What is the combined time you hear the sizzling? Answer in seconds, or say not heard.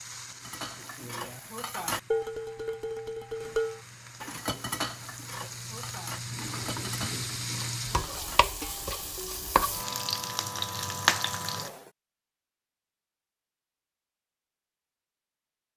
12 s.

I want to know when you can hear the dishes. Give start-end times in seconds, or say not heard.
0.3-9.5.